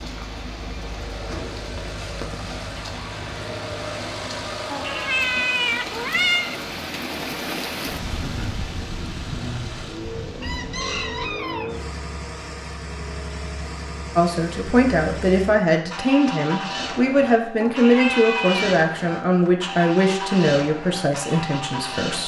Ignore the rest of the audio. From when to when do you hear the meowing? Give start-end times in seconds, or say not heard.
4.7-6.5, 17.6-18.8.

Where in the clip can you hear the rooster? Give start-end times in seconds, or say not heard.
10.4-11.8.